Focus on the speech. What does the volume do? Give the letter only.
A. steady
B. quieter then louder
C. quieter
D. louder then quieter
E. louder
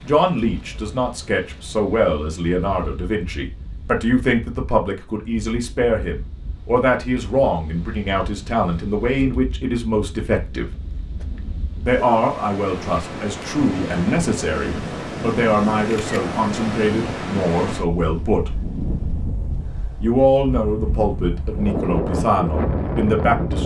A.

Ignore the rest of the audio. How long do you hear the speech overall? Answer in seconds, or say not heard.
21 s.